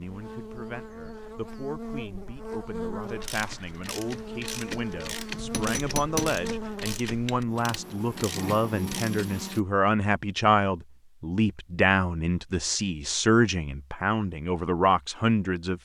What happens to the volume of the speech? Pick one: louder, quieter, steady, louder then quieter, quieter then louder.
louder.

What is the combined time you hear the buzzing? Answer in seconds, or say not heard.
10 s.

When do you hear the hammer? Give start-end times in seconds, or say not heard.
5.3-6.4.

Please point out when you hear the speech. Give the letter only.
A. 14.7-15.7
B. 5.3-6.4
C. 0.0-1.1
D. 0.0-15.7
D.